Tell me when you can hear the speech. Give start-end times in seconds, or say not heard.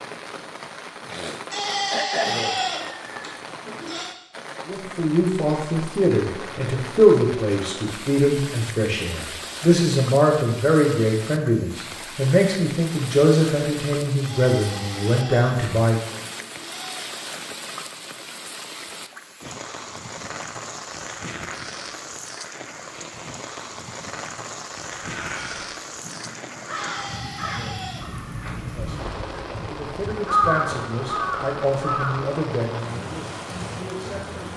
4.7-16.1, 28.6-34.5.